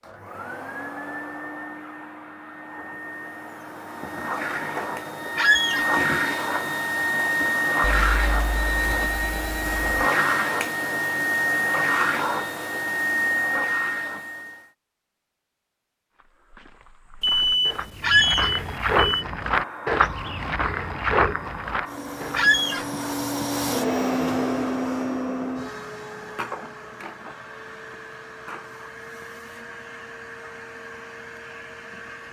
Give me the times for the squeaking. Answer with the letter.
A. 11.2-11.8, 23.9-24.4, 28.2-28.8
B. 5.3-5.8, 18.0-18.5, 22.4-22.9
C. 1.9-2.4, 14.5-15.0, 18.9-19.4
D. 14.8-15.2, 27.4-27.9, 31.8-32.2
B.